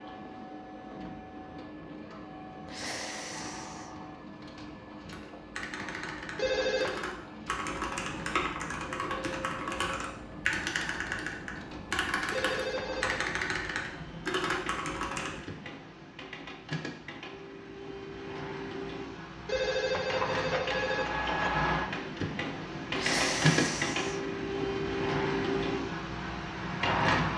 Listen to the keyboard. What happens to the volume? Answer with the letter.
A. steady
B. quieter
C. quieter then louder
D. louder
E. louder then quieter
D.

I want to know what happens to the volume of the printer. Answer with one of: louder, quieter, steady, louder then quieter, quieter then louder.
louder.